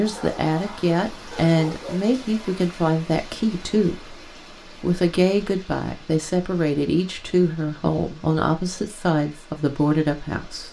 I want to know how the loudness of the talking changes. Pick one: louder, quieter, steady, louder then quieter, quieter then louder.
steady.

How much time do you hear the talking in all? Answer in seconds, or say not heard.
10 s.